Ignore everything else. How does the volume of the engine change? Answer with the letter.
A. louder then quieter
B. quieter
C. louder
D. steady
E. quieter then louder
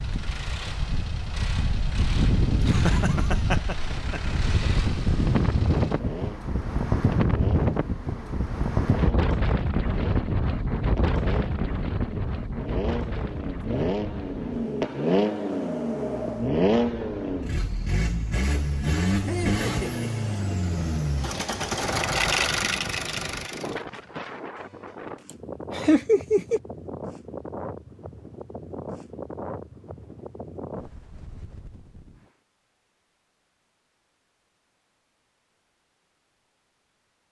C.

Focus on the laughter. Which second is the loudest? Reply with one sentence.
The volume of the laughter peaks at 26 seconds.